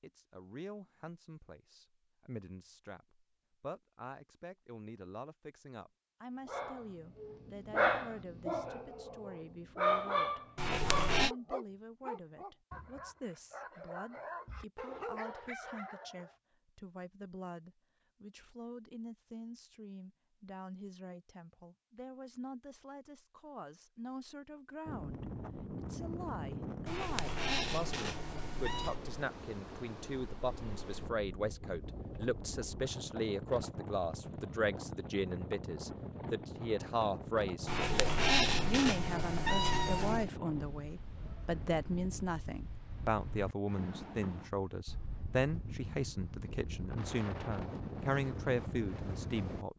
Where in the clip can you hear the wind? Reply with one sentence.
You can hear the wind from 24.9 to 49.6 s.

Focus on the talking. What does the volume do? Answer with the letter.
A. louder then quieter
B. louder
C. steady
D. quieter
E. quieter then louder
B.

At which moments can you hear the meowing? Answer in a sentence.
The meowing can be heard from 10.6 to 11.3 s, from 26.9 to 29.0 s and from 37.6 to 40.3 s.